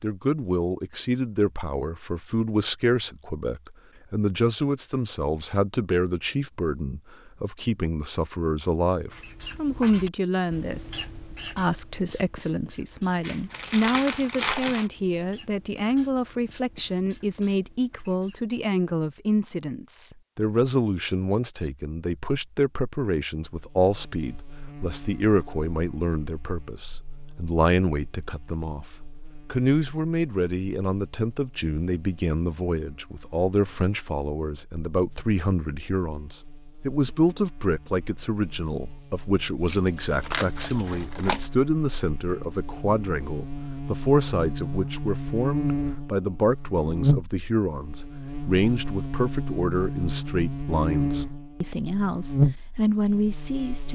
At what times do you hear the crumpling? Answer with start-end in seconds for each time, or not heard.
13.2-14.9, 39.6-41.5.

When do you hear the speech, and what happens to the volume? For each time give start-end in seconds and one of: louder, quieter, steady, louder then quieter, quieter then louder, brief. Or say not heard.
0.0-53.9 steady.